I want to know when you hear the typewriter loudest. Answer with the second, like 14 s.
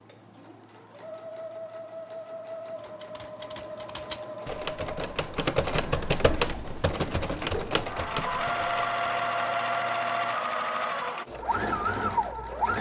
6 s.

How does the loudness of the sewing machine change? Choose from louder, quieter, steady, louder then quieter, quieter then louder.
louder.